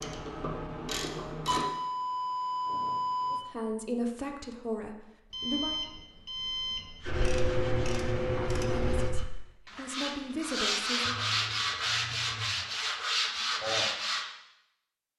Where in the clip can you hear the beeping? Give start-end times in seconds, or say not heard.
1.4-3.4, 5.3-7.2, 11.1-12.7.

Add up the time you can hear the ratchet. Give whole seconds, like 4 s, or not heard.
4 s.